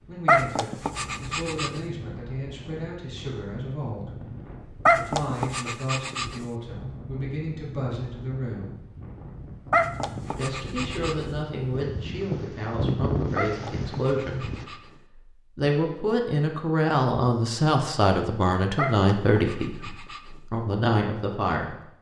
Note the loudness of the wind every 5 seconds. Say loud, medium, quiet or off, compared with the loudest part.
medium, medium, loud, off, off.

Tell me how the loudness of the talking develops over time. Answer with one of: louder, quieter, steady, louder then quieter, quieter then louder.
louder.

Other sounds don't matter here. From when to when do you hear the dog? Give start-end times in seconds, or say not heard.
0.2-1.8, 4.8-6.3, 9.7-11.2, 13.3-14.9, 18.8-20.4.